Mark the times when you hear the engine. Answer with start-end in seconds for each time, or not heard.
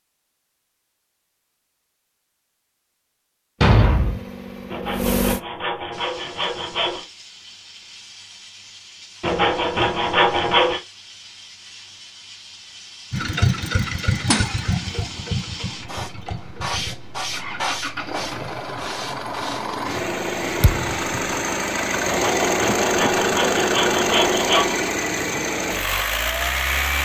3.8-5.4, 13.1-27.0.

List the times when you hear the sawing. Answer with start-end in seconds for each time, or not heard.
4.7-7.0, 9.2-10.8, 22.1-24.8.